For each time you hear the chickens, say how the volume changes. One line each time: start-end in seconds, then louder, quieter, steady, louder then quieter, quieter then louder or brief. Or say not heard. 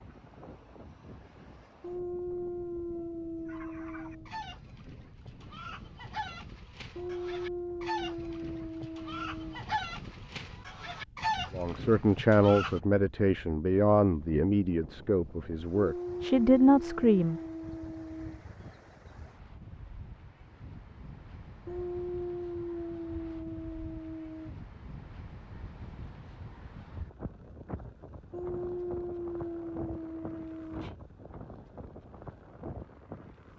3.5-12.8 louder.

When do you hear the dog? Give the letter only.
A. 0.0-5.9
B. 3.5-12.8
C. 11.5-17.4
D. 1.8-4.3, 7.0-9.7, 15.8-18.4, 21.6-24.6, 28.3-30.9
D.